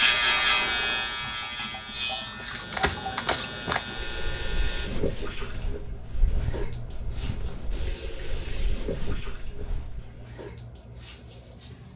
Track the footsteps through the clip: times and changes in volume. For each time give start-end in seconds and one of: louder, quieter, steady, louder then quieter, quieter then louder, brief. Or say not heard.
2.4-10.2 quieter.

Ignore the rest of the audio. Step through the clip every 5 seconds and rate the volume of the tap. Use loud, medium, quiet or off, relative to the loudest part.
loud, loud, medium.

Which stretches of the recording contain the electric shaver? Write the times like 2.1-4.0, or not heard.
0.0-4.9.